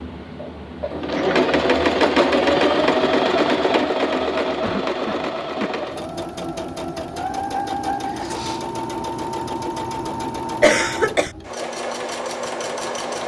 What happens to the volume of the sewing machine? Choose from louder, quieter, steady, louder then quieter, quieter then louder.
quieter.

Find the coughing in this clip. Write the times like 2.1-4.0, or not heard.
1.1-2.2, 4.6-5.8, 10.6-11.3.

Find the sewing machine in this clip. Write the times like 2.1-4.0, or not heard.
0.0-13.2.